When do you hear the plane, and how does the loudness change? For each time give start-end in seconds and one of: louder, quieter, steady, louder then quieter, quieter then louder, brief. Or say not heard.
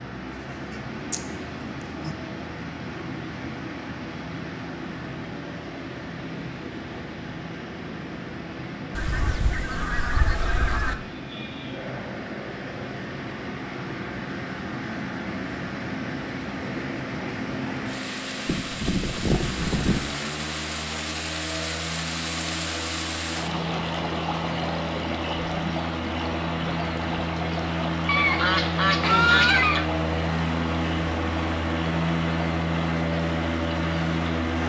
0.0-34.6 louder.